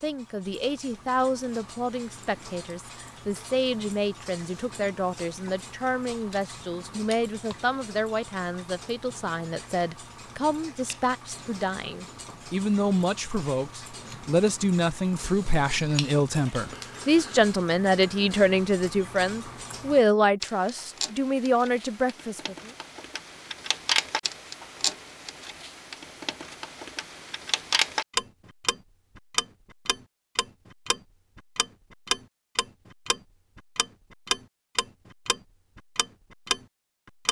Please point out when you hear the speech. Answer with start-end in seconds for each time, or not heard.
0.0-22.7.